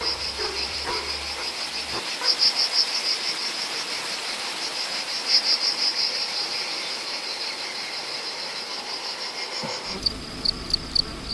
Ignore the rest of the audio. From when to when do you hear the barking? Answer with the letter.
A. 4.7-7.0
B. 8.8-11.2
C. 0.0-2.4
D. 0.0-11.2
C.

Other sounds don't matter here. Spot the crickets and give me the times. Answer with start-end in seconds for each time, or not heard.
0.0-11.2.